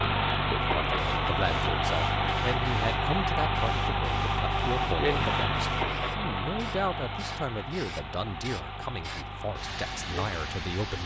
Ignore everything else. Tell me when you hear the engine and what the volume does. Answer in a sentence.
You can hear the engine from 0.0 to 11.0 s, getting quieter.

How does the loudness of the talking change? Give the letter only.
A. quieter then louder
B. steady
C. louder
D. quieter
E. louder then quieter
B.